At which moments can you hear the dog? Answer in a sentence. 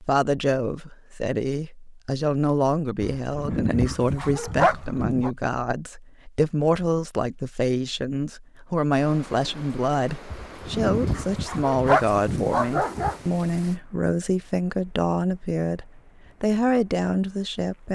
The dog can be heard from 3.0 to 5.3 s and from 10.3 to 13.2 s.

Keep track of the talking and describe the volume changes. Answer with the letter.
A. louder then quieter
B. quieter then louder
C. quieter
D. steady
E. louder
D.